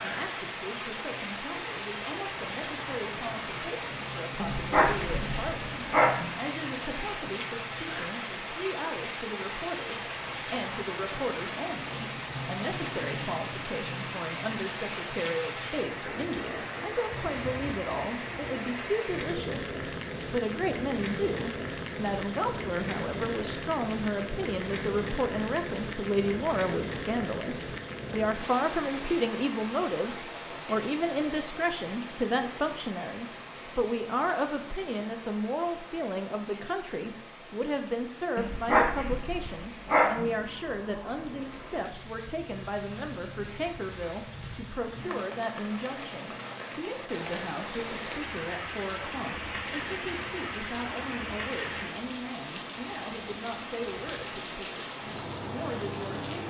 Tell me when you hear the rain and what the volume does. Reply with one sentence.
You can hear the rain from 0.0 to 56.4 s, getting quieter then louder.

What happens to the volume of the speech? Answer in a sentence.
The volume of the speech goes up, then down.